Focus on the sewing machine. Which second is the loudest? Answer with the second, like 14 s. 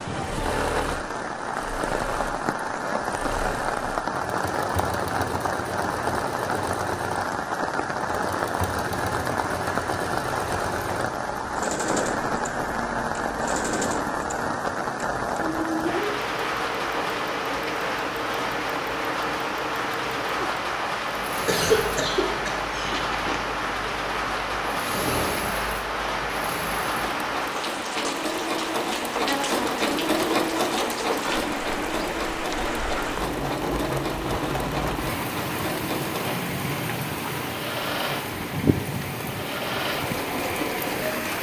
30 s.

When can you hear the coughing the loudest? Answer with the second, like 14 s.
22 s.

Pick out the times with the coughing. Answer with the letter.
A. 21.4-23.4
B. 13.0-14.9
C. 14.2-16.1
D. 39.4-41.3
A.